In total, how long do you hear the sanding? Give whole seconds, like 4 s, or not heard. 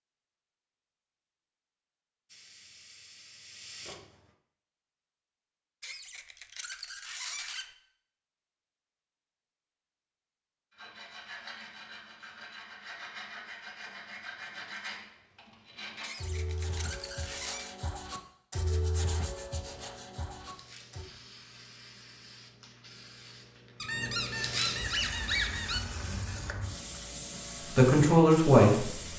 10 s.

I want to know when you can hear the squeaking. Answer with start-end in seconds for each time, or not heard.
5.8-7.7, 16.0-17.8, 23.8-25.8.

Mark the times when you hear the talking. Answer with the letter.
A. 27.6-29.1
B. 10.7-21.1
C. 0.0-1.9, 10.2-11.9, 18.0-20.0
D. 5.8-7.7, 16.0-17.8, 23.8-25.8
A.